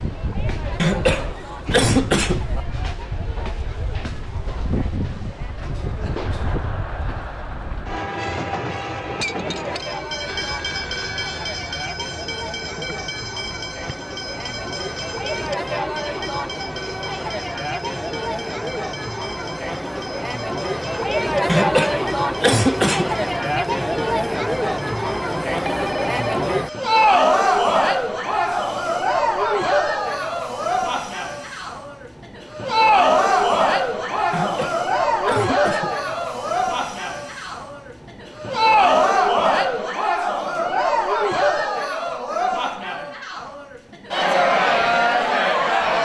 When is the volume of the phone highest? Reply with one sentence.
The loudest moment of the phone is at 26 seconds.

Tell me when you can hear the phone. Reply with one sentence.
The phone can be heard from 10.2 to 11.7 s and from 25.6 to 26.4 s.